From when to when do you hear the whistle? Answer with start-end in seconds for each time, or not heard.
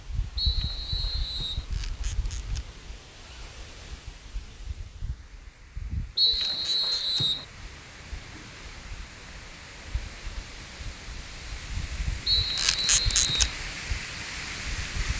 0.3-1.6, 6.2-7.5, 12.2-13.6.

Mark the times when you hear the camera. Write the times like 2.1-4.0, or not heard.
1.7-2.6, 6.3-7.2, 12.6-13.5.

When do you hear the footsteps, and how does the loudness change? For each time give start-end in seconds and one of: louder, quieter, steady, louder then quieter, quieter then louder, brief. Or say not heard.
not heard.